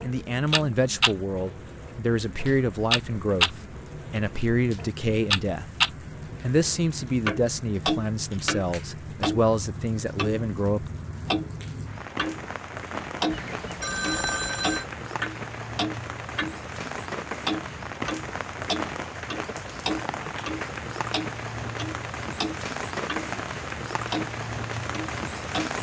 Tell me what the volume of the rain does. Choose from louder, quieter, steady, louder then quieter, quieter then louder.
louder.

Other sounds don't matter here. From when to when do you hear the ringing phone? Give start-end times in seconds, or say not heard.
13.3-14.8.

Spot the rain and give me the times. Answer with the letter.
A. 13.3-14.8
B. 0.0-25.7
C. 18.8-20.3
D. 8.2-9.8
B.